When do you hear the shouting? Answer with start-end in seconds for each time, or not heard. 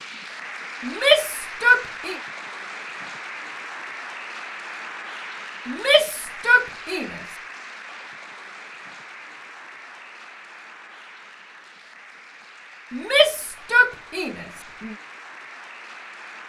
0.8-2.1, 5.7-7.2, 12.9-14.9.